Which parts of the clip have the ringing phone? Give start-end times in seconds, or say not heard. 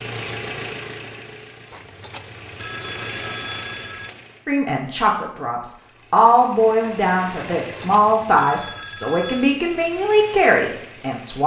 1.7-4.2, 7.7-9.6.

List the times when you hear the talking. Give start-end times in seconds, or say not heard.
4.5-11.4.